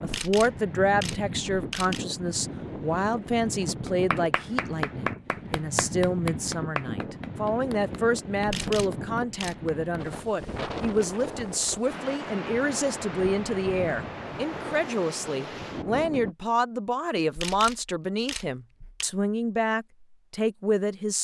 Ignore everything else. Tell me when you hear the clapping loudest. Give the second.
5 s.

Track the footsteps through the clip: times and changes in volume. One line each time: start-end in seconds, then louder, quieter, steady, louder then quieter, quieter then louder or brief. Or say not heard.
not heard.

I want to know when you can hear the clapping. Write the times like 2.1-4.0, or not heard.
3.9-9.8.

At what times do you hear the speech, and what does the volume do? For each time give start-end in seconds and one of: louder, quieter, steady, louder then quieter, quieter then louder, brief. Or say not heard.
0.0-21.1 steady.